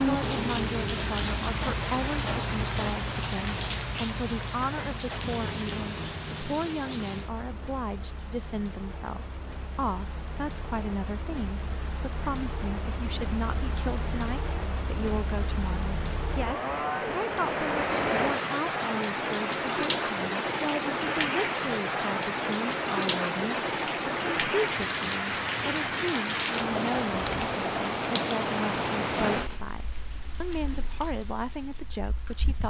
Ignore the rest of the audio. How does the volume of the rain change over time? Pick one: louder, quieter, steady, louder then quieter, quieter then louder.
quieter then louder.